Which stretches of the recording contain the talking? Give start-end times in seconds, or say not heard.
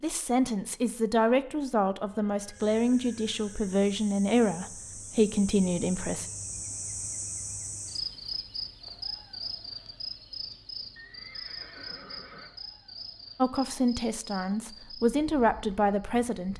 0.0-6.2, 13.3-16.5.